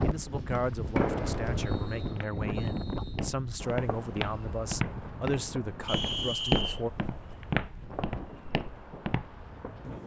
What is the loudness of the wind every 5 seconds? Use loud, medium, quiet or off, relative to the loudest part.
loud, medium.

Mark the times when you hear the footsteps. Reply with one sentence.
The footsteps can be heard from 1.9 to 9.4 s.